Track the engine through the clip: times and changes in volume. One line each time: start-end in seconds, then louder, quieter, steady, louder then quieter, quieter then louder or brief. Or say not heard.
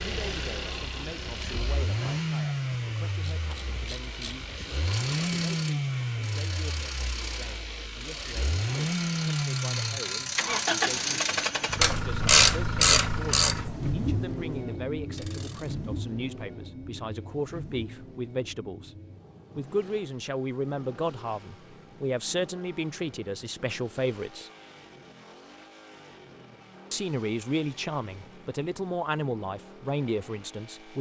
0.0-30.9 quieter.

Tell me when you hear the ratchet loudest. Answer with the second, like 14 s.
12 s.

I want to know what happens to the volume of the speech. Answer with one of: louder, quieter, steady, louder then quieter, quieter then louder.
louder.